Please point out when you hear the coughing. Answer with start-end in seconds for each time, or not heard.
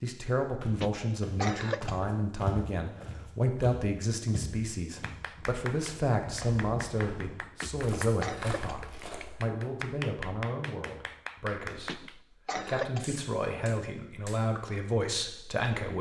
0.8-2.1, 7.6-8.9, 11.8-13.2.